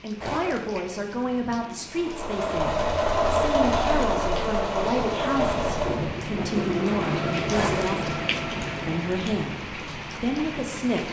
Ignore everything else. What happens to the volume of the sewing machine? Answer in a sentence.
The loudness of the sewing machine goes down.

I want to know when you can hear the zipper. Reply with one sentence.
The zipper can be heard from 0.1 to 0.8 s and from 7.5 to 8.0 s.